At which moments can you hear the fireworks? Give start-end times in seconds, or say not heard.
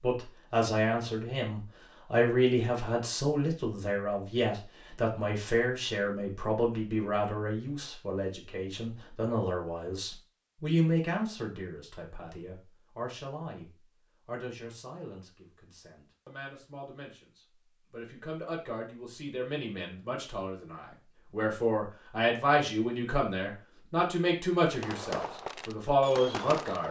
24.6-26.8.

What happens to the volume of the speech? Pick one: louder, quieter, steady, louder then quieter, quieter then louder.
quieter then louder.